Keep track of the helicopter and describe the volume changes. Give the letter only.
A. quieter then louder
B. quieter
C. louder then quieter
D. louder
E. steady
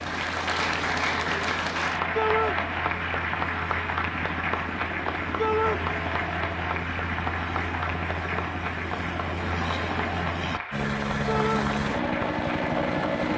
D.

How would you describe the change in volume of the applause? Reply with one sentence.
The volume of the applause goes down.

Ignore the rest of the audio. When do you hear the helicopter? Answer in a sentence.
You can hear the helicopter from 0.0 to 13.3 s.